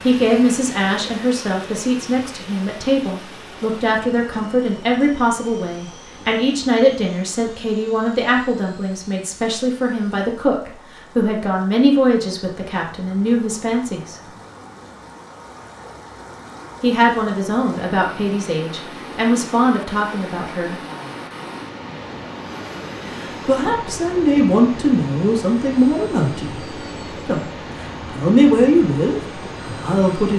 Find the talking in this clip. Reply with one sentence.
You can hear the talking from 0.0 to 14.2 s, from 16.8 to 20.8 s and from 23.2 to 30.3 s.